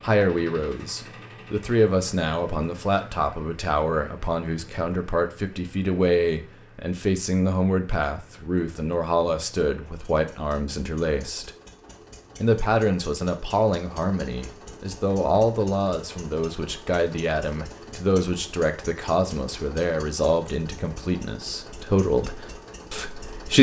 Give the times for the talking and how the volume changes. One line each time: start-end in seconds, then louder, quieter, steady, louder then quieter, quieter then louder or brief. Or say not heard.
0.0-11.5 steady
12.4-23.5 steady.